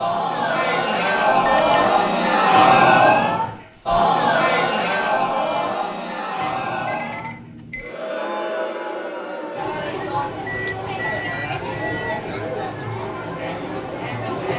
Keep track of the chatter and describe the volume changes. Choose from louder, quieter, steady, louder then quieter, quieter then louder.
quieter.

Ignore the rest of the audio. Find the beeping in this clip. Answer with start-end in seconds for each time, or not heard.
1.4-2.1, 6.4-8.0, 10.4-12.2.